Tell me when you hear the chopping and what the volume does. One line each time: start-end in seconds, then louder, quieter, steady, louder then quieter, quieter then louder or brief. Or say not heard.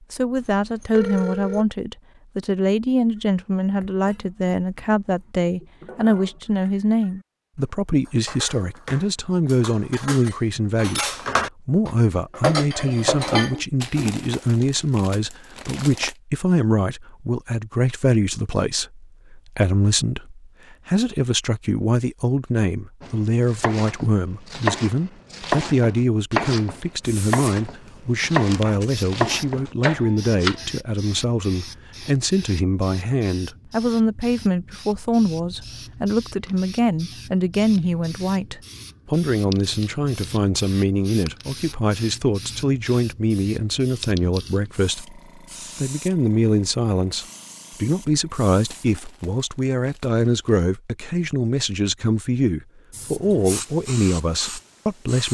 23.0-30.6 steady.